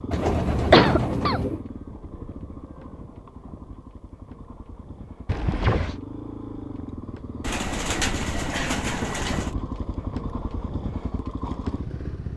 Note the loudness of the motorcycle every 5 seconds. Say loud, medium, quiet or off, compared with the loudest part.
medium, loud, loud.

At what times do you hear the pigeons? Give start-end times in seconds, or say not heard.
0.1-1.6, 7.4-9.6.